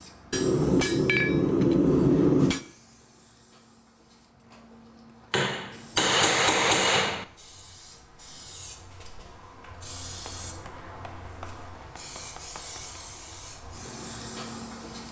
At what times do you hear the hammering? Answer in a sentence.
The hammering can be heard from 0.3 to 2.6 s, from 5.3 to 7.2 s and from 10.2 to 13.1 s.